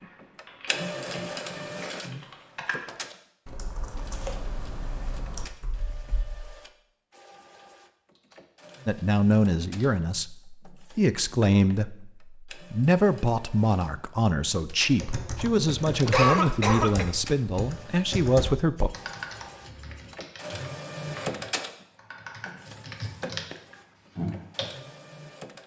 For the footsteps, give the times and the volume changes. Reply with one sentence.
The footsteps can't be heard in this clip.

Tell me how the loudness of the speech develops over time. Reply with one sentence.
The volume of the speech stays about the same.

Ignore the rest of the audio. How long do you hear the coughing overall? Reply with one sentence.
You can hear the coughing for 2 seconds altogether.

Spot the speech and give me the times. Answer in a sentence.
You can hear the speech from 8.8 to 18.9 s.